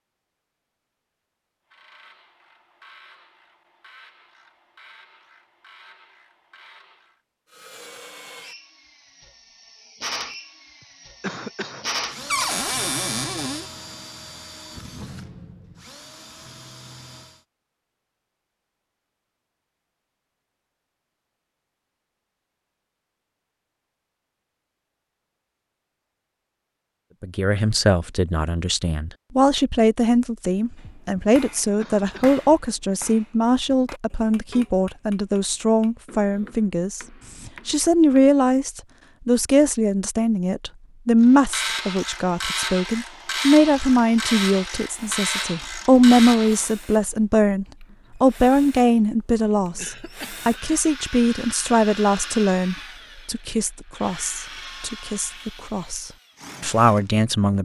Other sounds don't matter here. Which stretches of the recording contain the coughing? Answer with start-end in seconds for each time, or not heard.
11.2-11.8, 31.8-32.2, 49.8-50.8.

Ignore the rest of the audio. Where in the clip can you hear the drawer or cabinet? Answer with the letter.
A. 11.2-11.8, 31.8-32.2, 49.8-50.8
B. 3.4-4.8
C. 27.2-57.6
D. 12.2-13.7
D.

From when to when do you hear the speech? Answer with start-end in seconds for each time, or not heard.
27.2-57.6.